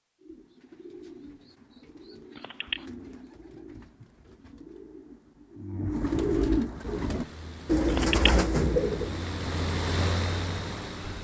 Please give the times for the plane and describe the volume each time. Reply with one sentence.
The plane can be heard from 6.7 to 11.1 s, getting louder.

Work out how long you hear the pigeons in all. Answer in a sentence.
The pigeons can be heard for 9 seconds in total.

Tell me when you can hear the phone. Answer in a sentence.
The phone can be heard from 2.4 to 2.9 s and from 7.8 to 8.4 s.